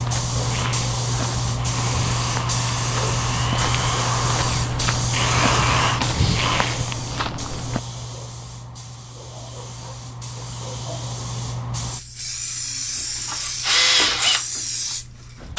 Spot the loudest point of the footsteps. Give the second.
6 s.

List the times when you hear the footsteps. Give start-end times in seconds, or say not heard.
0.0-7.8.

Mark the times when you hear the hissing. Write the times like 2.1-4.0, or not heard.
0.0-15.5.